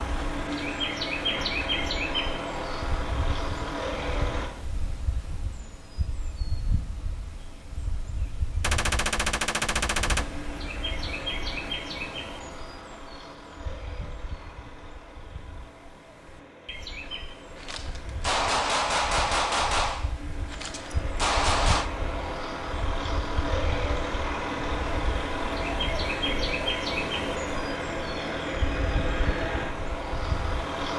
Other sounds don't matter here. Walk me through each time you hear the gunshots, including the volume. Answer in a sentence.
The gunshots can be heard briefly from 8.6 to 10.2 s; and from 17.6 to 21.9 s, getting quieter then louder.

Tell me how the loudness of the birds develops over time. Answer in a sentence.
The loudness of the birds goes down, then up.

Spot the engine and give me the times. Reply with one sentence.
You can hear the engine from 0.0 to 4.5 s and from 10.1 to 30.9 s.